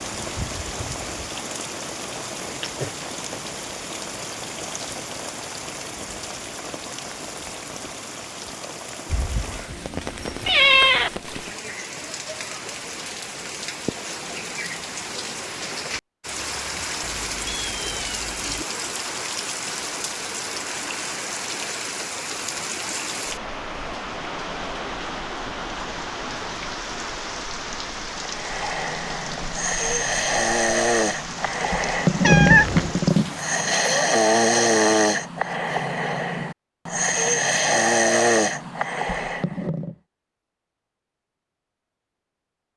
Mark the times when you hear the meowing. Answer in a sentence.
You can hear the meowing from 9.1 to 11.1 s, from 17.0 to 18.6 s and from 32.2 to 33.0 s.